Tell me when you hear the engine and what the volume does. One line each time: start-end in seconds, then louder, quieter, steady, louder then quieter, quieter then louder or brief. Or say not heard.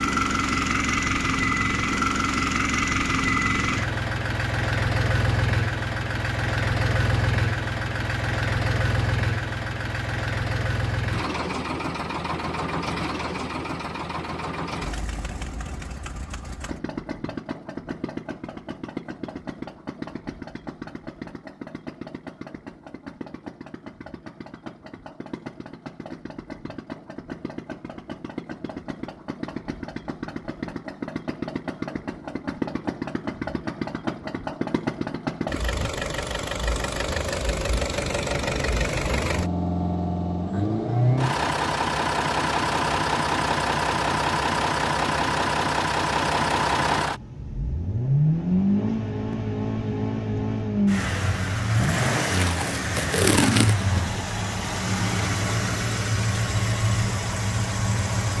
0.0-58.3 quieter then louder.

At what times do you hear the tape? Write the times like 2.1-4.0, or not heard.
52.3-53.9.